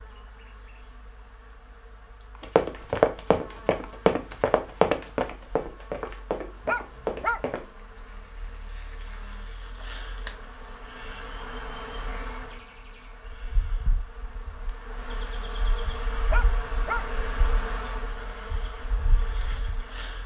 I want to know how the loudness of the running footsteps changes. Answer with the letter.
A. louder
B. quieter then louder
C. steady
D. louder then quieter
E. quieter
E.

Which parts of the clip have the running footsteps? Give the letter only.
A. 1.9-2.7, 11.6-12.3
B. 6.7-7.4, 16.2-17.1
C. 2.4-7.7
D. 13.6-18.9
C.